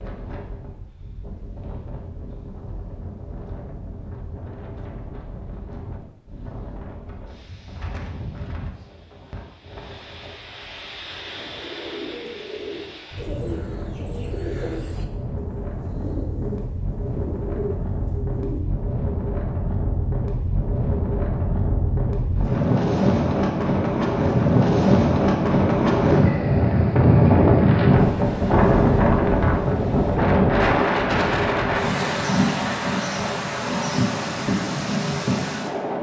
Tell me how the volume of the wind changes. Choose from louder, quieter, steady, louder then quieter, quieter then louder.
louder.